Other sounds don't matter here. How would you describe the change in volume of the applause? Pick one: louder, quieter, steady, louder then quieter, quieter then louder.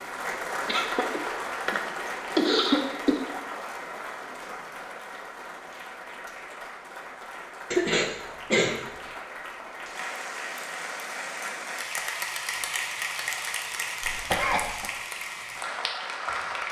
quieter then louder.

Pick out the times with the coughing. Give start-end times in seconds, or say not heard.
0.7-3.2, 7.7-8.8, 14.0-14.9.